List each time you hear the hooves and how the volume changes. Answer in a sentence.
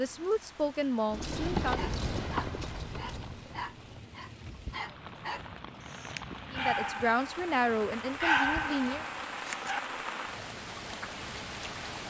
You can hear the hooves from 1.1 to 9.2 s, getting quieter.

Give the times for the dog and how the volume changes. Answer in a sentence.
You can hear the dog from 1.8 to 7.2 s, getting louder; and briefly from 8.2 to 9.8 s.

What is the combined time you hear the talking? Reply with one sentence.
The talking can be heard for 4 seconds in total.